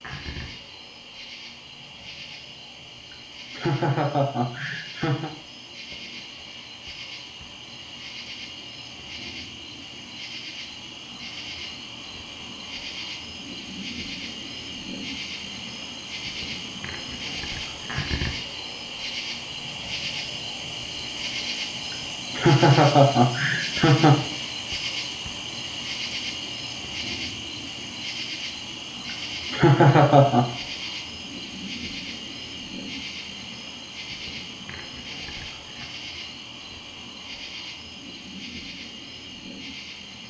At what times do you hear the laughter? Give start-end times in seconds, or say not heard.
3.5-5.3, 22.4-24.2, 29.5-30.4.